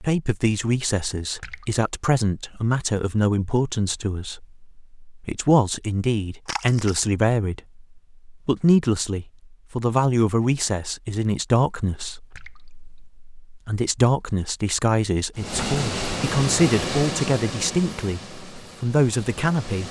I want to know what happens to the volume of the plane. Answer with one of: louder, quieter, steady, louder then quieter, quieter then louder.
quieter.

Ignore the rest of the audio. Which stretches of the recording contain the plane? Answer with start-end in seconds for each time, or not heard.
15.3-19.8.